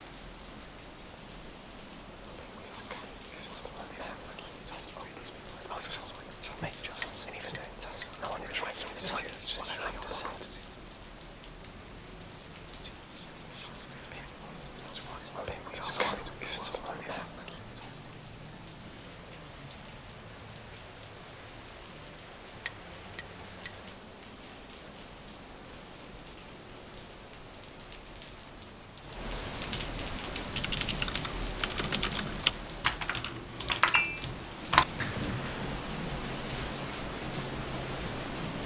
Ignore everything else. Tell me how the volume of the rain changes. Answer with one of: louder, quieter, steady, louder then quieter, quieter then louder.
louder.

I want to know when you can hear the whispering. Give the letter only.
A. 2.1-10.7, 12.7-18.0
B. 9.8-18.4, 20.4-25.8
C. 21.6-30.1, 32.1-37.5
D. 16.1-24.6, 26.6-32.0
A.